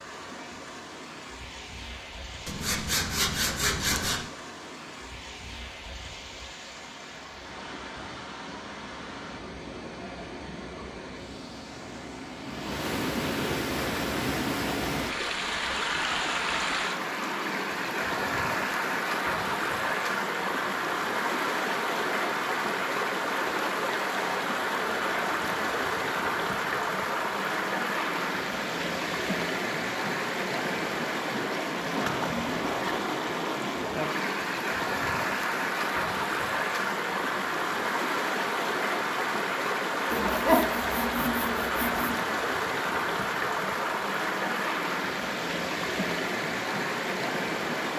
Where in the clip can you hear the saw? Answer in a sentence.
You can hear the saw from 2.5 to 4.2 s and from 40.1 to 42.1 s.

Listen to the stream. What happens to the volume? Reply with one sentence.
The volume of the stream goes up.